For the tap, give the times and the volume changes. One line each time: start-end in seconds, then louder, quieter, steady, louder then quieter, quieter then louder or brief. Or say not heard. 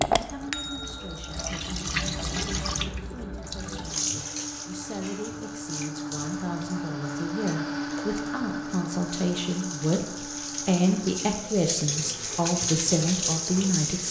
0.0-14.0 quieter then louder.